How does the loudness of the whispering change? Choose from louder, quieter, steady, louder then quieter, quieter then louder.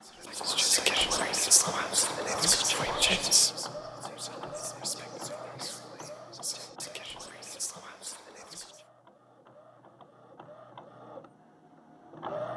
quieter.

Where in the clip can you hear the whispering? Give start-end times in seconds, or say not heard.
0.2-8.8.